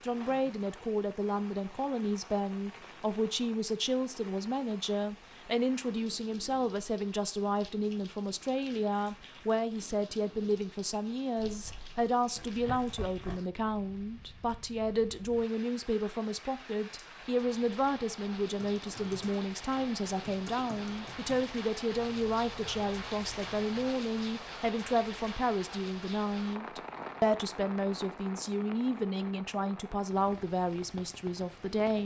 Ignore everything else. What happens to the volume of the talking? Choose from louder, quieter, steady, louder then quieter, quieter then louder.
steady.